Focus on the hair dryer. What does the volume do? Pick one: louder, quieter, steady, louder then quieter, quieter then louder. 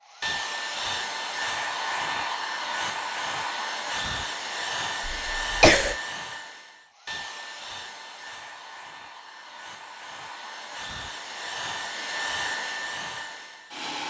quieter then louder.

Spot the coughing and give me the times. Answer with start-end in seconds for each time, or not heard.
5.0-6.0.